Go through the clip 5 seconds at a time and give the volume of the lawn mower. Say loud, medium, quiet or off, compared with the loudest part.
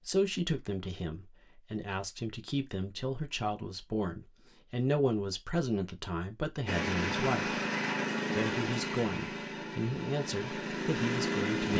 off, loud, loud.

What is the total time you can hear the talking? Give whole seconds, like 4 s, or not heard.
11 s.